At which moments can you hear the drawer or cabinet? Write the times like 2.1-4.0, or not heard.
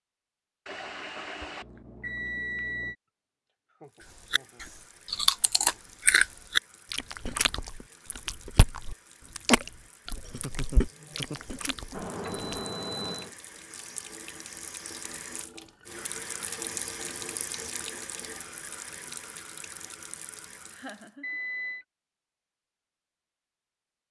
not heard.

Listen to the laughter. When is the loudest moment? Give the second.
11 s.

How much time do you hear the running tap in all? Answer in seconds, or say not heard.
17 s.